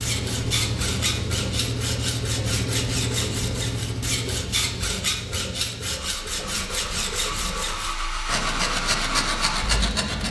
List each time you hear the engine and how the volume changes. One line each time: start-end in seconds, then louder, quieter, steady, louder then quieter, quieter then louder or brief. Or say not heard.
0.0-10.2 quieter then louder.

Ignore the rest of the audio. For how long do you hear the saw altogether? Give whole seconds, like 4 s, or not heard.
10 s.